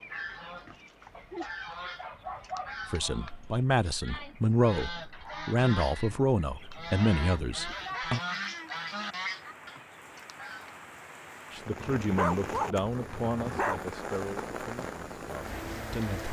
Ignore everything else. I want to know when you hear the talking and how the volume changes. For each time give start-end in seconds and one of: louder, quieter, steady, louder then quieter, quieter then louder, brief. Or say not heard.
2.9-8.2 steady
11.5-16.2 quieter.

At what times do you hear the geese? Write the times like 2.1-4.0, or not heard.
0.0-10.8.